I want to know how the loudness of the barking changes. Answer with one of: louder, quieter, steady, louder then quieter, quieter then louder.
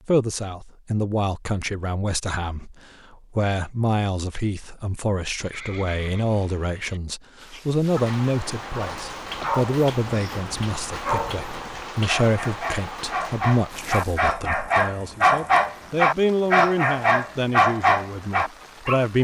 louder.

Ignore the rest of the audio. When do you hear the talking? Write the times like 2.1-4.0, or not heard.
0.1-2.8, 3.4-19.1.